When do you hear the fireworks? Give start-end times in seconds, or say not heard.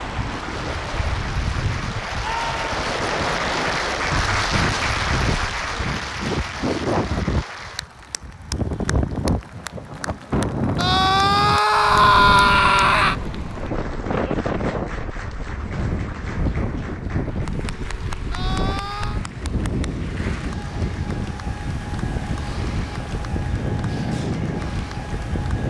not heard.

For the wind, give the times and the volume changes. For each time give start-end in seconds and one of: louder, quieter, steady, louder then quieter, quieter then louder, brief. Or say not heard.
0.0-25.6 steady.